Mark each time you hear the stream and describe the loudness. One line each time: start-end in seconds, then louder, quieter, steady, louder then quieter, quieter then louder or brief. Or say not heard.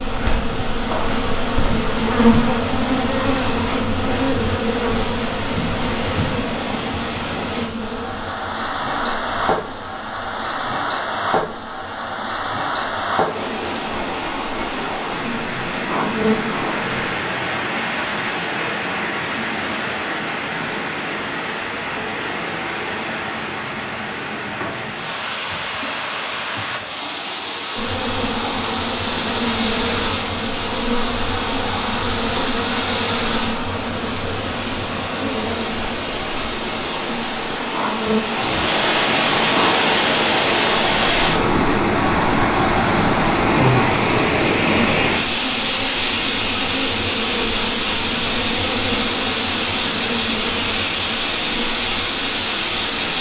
0.0-53.1 louder.